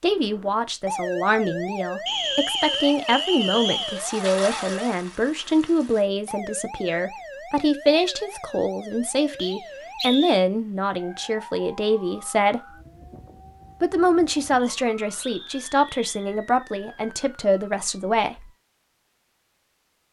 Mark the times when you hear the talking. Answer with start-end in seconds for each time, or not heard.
0.0-12.7, 13.8-18.5.